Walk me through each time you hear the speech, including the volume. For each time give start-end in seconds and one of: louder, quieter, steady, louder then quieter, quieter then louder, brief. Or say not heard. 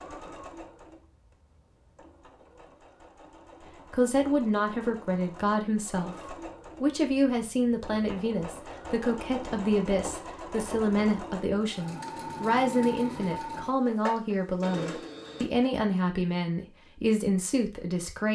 3.9-18.2 steady.